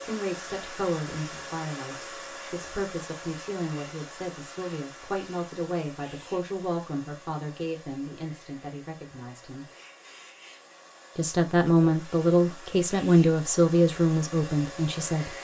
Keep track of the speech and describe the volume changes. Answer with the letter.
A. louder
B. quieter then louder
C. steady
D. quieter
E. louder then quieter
A.